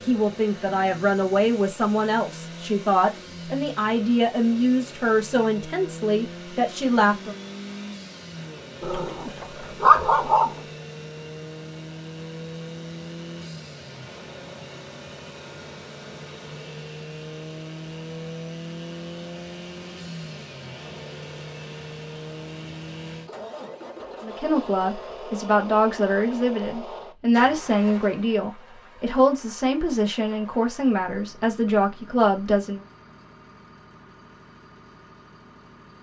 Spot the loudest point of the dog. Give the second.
10 s.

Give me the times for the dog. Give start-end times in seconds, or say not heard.
8.8-10.5.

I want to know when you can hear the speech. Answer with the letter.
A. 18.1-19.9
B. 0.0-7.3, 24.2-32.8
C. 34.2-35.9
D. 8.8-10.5
B.